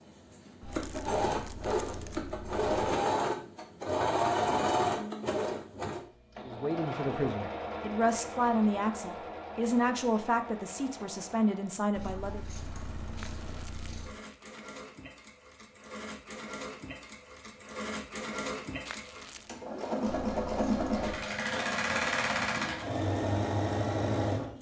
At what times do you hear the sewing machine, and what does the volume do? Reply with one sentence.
You can hear the sewing machine from 0.0 to 24.5 s, getting quieter then louder.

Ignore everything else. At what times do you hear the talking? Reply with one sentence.
The talking can be heard from 6.4 to 12.4 s.